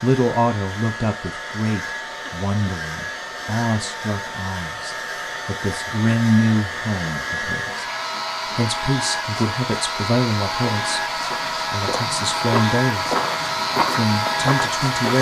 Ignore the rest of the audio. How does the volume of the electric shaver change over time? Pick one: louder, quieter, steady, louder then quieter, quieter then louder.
louder.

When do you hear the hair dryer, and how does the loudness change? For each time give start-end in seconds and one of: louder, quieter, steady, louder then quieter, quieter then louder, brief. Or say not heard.
0.0-15.1 louder.